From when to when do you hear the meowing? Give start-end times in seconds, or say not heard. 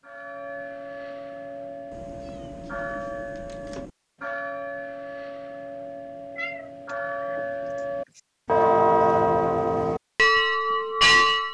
1.9-3.9, 6.3-8.2.